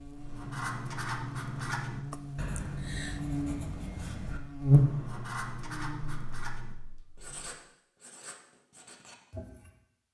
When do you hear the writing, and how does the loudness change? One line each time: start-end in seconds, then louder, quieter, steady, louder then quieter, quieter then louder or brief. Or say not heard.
0.1-9.8 quieter.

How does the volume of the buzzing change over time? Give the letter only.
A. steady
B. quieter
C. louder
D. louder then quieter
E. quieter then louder
D.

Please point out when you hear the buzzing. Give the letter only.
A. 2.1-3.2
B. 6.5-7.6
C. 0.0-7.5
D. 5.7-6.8
C.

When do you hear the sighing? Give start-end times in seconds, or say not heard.
2.1-3.2.